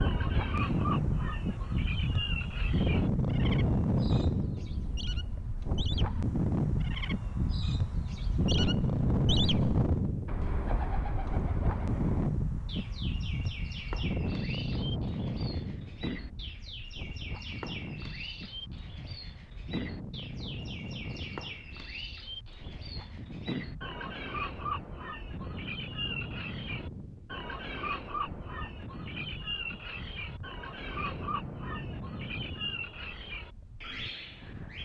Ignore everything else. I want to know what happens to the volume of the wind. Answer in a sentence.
The loudness of the wind goes down.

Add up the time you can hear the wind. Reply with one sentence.
You can hear the wind for 35 seconds altogether.